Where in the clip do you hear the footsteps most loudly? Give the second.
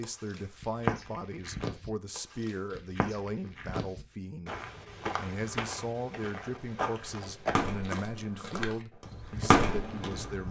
1 s.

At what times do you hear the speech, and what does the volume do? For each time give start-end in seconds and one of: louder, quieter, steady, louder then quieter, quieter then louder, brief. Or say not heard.
0.0-10.4 steady.